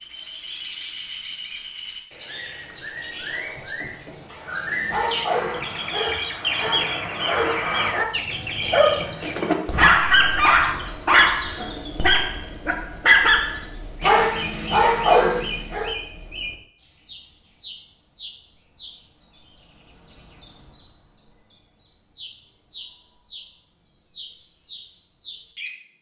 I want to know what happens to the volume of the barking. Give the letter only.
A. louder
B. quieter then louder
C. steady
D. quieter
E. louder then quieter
A.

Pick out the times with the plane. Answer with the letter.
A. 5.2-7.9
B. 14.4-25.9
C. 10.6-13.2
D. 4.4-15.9
A.